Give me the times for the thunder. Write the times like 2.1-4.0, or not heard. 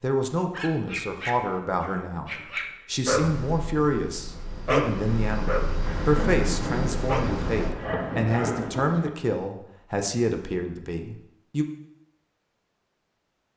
5.8-9.1.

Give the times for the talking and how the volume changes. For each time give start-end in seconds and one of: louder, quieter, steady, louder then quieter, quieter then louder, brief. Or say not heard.
0.0-11.7 steady.